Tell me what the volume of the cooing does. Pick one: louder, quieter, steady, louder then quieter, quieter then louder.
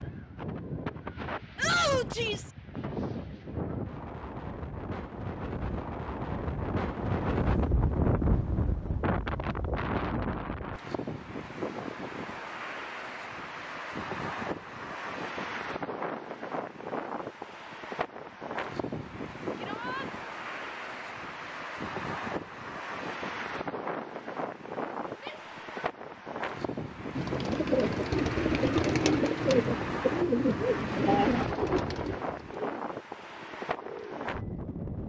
quieter.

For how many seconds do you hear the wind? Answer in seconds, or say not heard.
35 s.